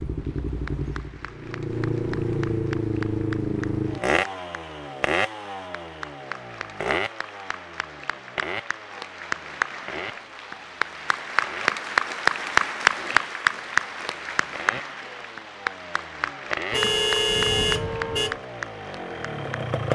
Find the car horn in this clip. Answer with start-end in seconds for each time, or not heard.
16.7-18.4.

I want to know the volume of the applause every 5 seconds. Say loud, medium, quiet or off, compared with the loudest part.
quiet, medium, loud, medium.